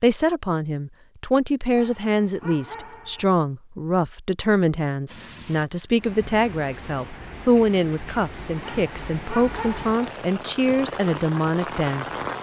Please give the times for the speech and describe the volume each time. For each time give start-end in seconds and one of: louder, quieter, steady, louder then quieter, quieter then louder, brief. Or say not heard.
0.0-12.2 steady.